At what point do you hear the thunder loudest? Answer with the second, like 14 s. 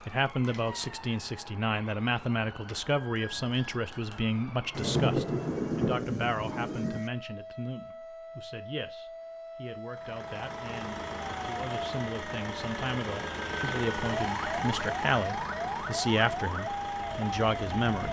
5 s.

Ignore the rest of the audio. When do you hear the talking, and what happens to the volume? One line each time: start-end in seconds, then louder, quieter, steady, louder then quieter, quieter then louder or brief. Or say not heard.
0.1-18.0 quieter then louder.